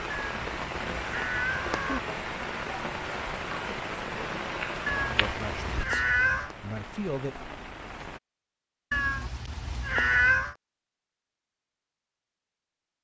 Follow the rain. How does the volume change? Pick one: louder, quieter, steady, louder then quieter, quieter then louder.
quieter.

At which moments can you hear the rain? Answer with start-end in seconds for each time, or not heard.
0.0-8.2.